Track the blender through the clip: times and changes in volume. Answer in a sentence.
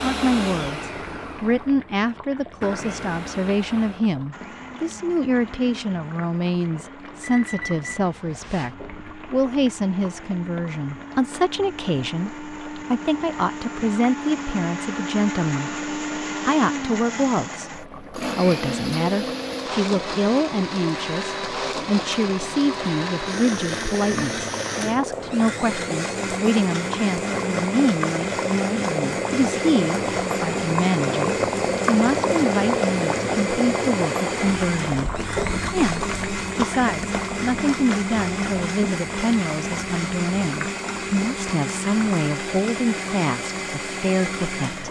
You can hear the blender from 0.0 to 44.8 s, getting louder.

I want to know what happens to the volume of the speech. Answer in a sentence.
The volume of the speech stays about the same.